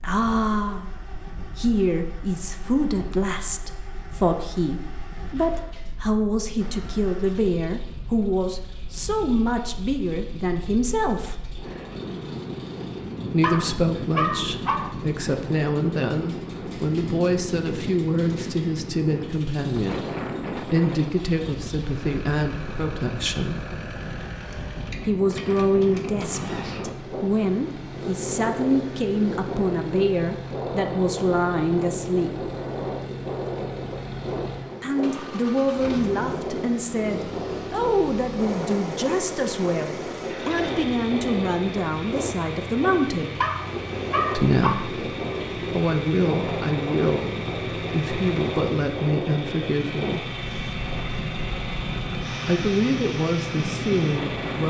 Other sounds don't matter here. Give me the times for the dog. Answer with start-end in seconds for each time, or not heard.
13.4-14.9, 43.4-44.9.